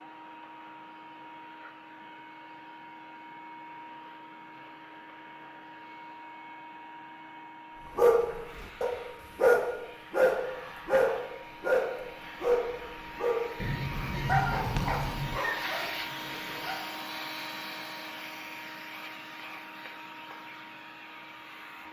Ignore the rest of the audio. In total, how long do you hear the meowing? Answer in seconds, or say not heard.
2 s.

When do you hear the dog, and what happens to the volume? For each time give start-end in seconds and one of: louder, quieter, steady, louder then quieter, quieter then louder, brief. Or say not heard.
8.0-13.6 louder then quieter
14.2-16.9 brief.